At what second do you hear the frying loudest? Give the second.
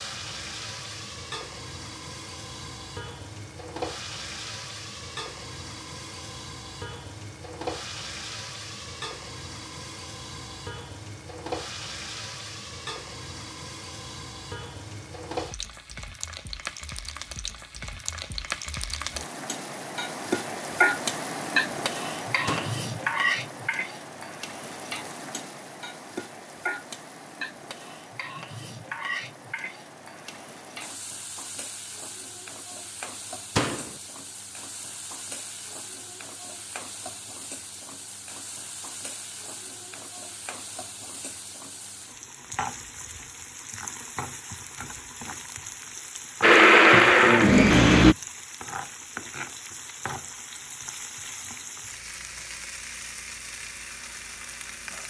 21 s.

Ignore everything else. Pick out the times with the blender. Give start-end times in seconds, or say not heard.
46.4-48.1.